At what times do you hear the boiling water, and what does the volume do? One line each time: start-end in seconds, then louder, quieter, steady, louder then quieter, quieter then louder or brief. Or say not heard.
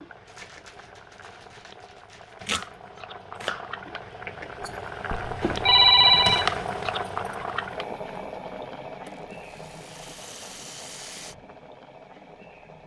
0.0-12.8 louder then quieter.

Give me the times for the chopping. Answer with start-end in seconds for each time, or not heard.
2.5-3.7.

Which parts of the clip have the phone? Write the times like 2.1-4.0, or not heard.
5.1-6.5.